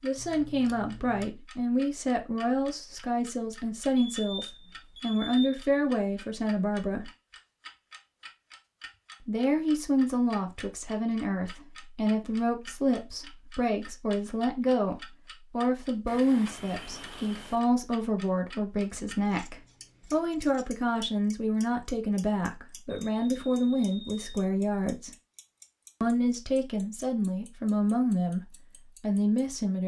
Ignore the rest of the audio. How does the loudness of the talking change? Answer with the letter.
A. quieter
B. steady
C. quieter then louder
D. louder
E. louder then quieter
B.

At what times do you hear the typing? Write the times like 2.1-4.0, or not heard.
not heard.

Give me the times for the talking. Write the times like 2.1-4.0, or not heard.
0.0-7.1, 9.2-25.1, 26.0-29.8.